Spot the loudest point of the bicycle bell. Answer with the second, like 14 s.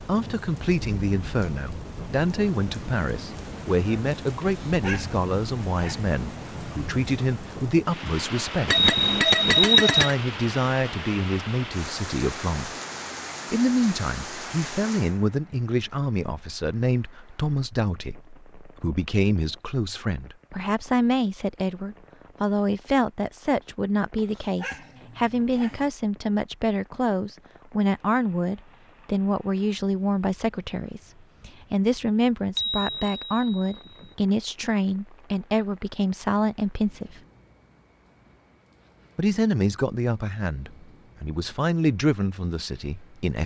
10 s.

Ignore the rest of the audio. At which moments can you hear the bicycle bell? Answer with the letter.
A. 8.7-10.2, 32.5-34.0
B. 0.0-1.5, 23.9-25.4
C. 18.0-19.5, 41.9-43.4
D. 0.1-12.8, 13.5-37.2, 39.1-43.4
A.